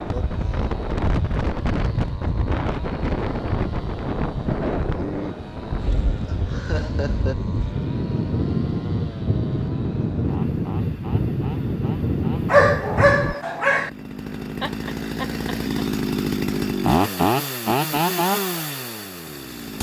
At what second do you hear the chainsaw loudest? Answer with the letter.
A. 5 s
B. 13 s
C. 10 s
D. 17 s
D.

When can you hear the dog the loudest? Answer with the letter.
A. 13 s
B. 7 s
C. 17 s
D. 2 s
A.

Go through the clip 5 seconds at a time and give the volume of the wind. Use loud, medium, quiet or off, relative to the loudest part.
loud, loud, loud, off.